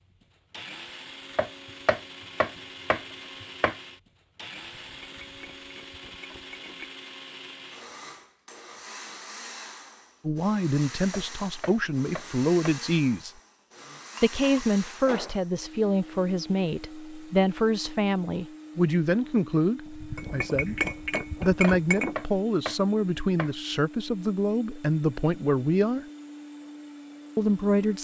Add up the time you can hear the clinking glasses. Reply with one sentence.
You can hear the clinking glasses for 6 seconds altogether.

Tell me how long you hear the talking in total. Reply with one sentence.
The talking can be heard for 15 seconds in total.